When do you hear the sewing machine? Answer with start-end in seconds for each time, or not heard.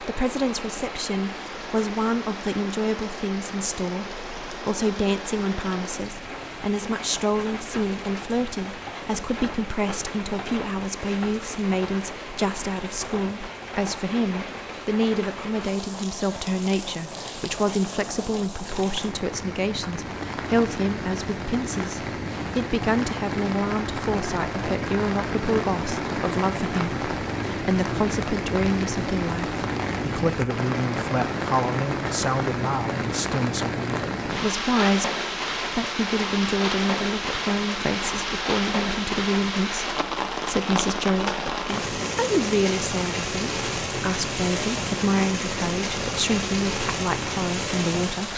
not heard.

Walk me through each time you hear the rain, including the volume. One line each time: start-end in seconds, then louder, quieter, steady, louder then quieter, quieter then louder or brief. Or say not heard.
0.0-48.3 louder.